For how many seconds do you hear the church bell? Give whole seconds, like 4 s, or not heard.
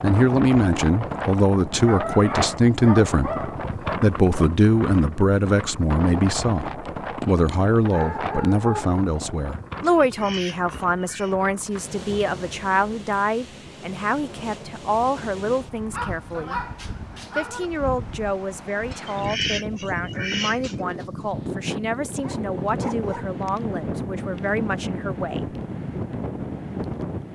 not heard.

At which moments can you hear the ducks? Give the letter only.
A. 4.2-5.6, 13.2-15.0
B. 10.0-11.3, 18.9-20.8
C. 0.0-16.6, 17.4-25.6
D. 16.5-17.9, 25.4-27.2
B.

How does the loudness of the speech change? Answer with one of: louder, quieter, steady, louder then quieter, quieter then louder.
quieter.